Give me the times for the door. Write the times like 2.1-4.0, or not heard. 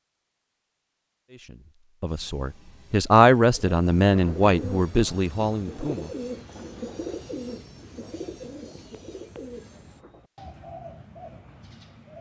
not heard.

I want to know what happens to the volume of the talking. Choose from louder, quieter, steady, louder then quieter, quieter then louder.
louder then quieter.